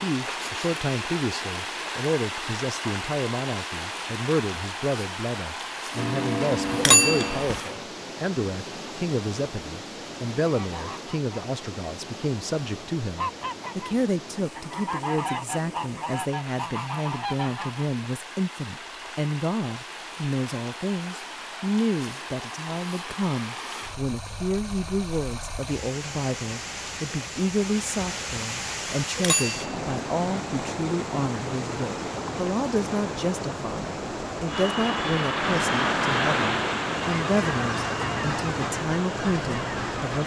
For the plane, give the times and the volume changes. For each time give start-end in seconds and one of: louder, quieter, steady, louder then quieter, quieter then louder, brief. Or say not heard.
5.9-8.0 brief
34.5-40.2 quieter.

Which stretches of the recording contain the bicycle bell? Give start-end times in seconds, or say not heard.
6.8-7.6, 29.1-29.8.